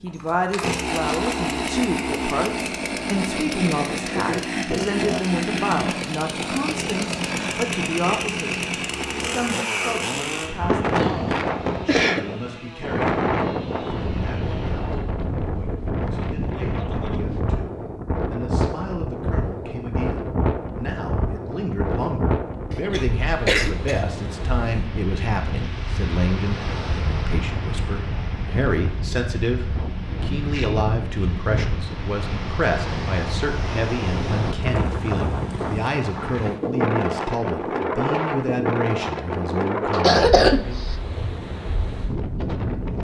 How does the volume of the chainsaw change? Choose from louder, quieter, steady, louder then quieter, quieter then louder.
quieter.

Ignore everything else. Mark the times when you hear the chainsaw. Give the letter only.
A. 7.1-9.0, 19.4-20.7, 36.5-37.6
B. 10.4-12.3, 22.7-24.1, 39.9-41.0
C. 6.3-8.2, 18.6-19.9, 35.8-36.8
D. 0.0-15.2
D.